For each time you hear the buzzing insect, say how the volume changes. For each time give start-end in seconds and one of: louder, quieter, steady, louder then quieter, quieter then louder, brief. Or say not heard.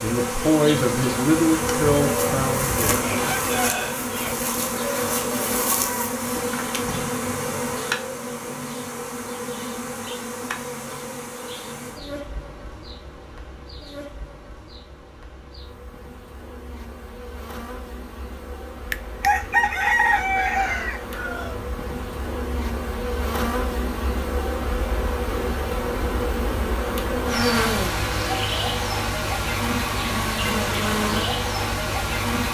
0.0-32.5 quieter then louder.